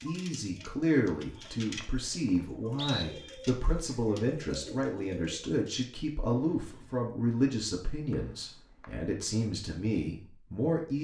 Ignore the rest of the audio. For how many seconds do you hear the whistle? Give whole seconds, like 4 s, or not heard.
3 s.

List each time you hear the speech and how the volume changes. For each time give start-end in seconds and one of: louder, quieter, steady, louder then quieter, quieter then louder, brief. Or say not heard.
0.0-10.9 steady.